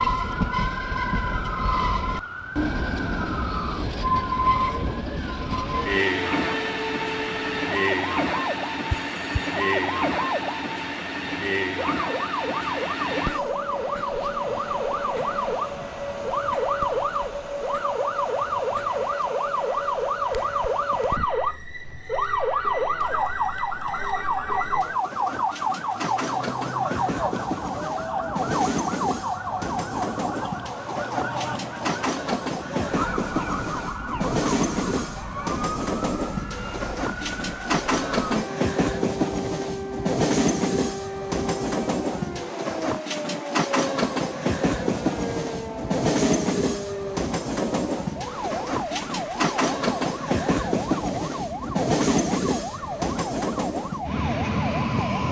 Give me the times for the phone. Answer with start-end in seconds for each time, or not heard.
8.9-9.6.